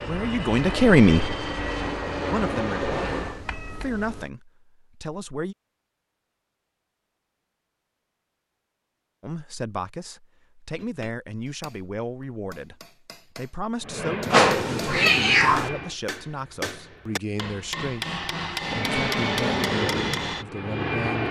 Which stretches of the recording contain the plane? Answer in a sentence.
You can hear the plane from 0.0 to 3.5 s, from 13.8 to 15.9 s and from 18.6 to 21.2 s.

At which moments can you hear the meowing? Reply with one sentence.
You can hear the meowing from 3.1 to 4.3 s and from 14.3 to 15.7 s.